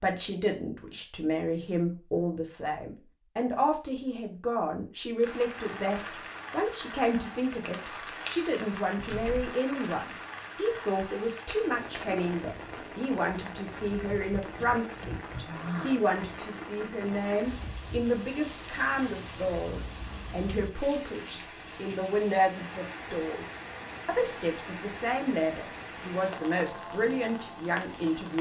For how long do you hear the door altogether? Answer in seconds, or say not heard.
2 s.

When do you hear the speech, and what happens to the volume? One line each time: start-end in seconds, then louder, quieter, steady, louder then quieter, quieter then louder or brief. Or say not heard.
0.0-28.3 steady.